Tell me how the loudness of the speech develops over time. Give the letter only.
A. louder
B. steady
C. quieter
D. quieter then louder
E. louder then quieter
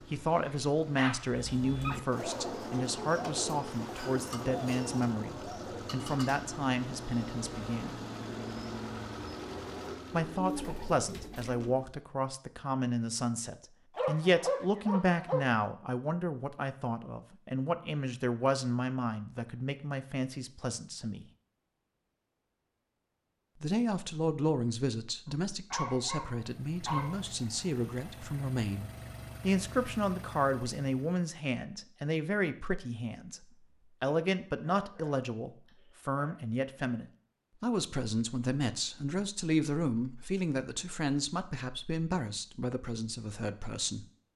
B.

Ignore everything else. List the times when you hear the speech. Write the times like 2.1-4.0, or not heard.
0.1-8.0, 10.1-21.2, 23.6-44.0.